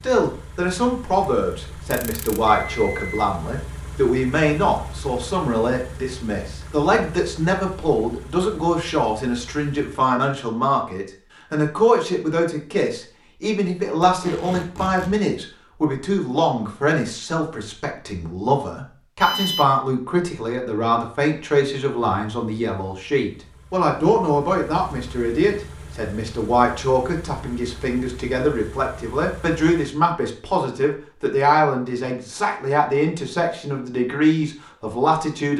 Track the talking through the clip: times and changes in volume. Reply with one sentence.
You can hear the talking from 0.0 to 35.5 s, at a steady volume.